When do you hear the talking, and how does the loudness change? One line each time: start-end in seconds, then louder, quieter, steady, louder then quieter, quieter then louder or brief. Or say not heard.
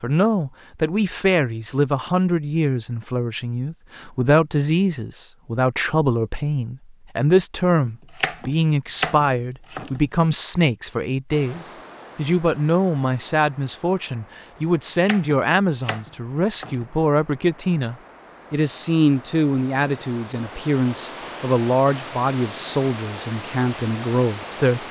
0.0-24.8 steady.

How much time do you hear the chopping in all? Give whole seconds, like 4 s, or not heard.
5 s.